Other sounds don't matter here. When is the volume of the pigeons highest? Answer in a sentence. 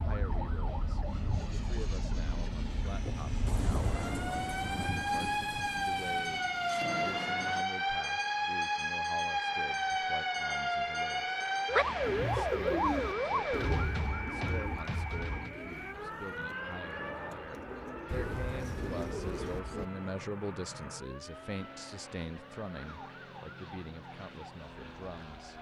The loudest moment of the pigeons is at 13 seconds.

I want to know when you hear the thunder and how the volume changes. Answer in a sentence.
The thunder can be heard from 3.5 to 7.7 s, getting quieter then louder; and briefly from 18.1 to 19.6 s.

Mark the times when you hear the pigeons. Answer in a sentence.
You can hear the pigeons from 12.0 to 19.9 s.